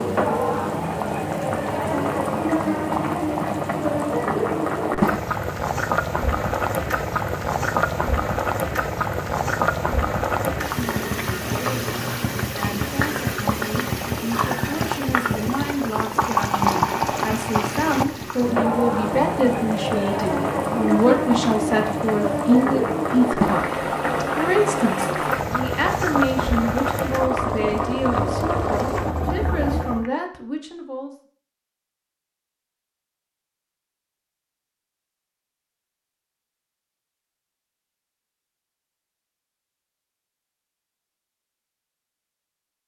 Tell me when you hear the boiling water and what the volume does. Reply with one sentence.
The boiling water can be heard from 0.0 to 30.1 s, at a steady volume.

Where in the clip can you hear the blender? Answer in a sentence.
You can't hear the blender here.